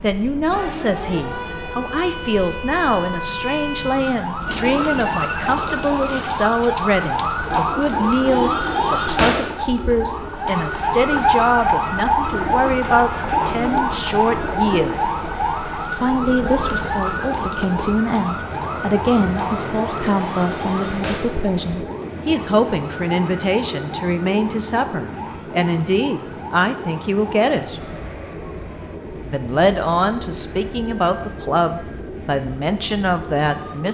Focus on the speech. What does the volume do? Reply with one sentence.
The volume of the speech stays about the same.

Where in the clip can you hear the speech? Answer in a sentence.
You can hear the speech from 0.0 to 15.2 s, from 15.9 to 27.8 s and from 29.2 to 33.8 s.